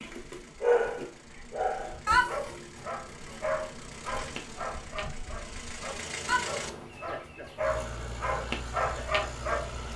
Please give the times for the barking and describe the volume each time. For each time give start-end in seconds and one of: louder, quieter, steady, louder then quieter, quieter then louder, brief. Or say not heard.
0.0-9.9 quieter then louder.